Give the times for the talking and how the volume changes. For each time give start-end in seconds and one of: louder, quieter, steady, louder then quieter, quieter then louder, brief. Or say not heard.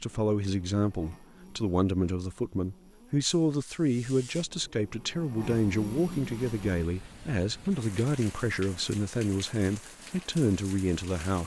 0.0-11.4 steady.